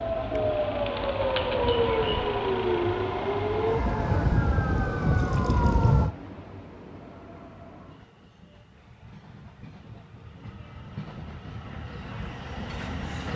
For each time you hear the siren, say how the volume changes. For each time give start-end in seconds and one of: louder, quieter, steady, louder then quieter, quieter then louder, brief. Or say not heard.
0.0-6.2 steady.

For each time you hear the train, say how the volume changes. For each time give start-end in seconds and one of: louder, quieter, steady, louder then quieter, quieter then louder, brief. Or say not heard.
0.0-13.3 quieter then louder.